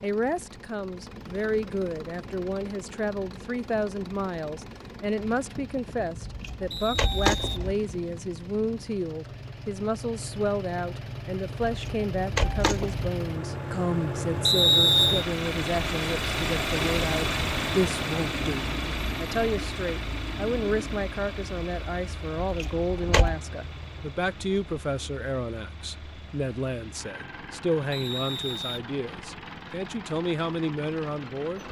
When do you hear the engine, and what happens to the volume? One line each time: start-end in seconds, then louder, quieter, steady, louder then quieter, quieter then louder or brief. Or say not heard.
0.0-31.6 louder then quieter.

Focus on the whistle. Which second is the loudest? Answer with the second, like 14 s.
15 s.